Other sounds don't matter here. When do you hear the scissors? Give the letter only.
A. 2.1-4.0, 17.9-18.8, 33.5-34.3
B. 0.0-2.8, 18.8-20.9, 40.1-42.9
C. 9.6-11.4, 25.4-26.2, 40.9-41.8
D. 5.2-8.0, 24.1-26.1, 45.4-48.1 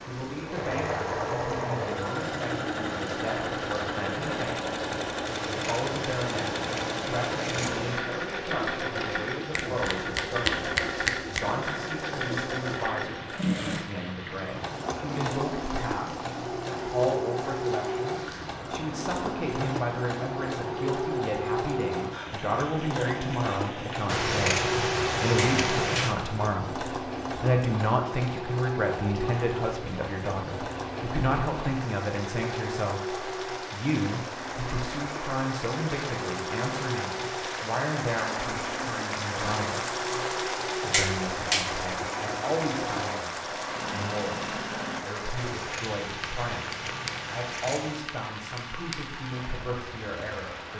D.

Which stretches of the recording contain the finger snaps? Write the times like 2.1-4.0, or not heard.
9.6-11.4, 25.4-26.2, 40.9-41.8.